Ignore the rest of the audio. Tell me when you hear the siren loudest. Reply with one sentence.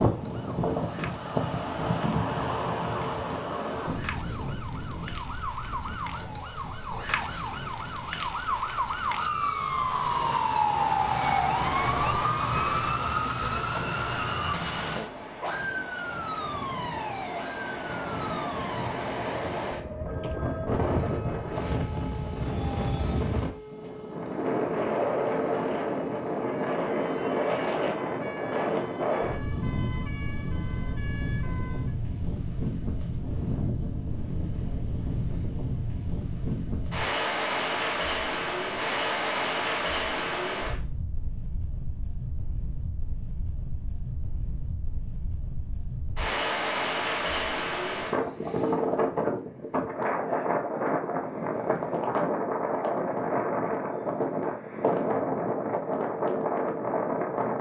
The loudest moment of the siren is at 11 seconds.